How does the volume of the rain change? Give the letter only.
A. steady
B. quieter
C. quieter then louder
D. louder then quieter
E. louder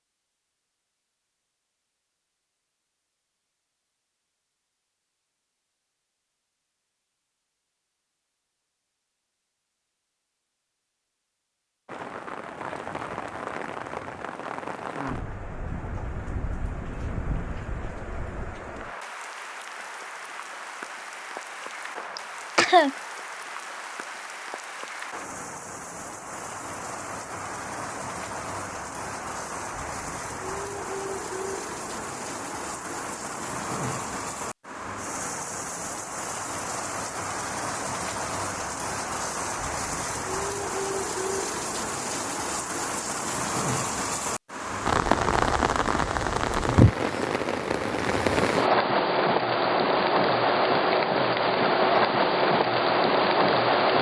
E.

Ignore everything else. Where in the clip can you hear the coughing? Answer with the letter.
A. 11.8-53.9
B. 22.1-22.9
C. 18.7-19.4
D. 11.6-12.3
B.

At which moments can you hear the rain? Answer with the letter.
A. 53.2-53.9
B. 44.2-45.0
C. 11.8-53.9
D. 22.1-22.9
C.